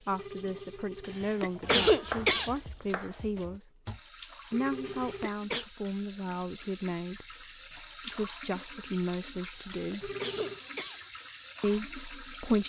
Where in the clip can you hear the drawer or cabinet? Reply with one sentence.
You can't hear the drawer or cabinet here.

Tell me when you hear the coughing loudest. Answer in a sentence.
The volume of the coughing peaks at 2 seconds.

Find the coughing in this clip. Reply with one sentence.
You can hear the coughing from 1.1 to 2.5 s, from 4.8 to 5.7 s and from 9.6 to 11.0 s.